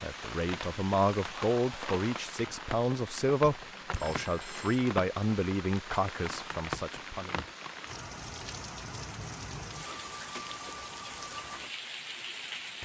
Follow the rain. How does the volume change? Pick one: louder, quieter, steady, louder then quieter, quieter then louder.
steady.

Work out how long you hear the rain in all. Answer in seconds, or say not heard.
13 s.